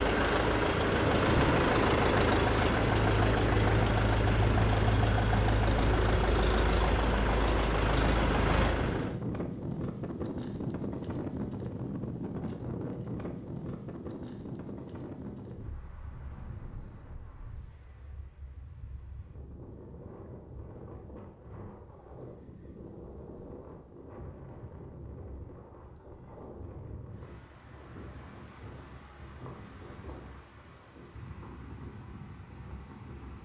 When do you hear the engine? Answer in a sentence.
The engine can be heard from 0.0 to 9.2 s.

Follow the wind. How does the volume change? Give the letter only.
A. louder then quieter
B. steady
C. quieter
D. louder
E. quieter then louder
C.